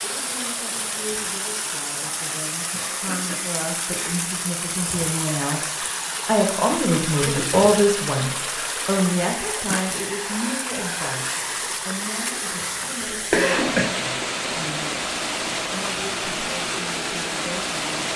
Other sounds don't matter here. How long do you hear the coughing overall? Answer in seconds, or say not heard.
3 s.